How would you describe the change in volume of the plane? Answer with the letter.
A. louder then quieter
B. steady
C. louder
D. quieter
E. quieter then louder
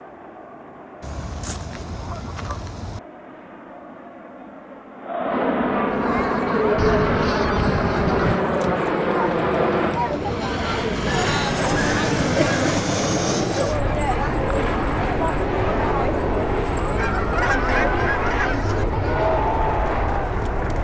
C.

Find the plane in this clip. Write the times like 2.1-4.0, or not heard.
0.0-20.7.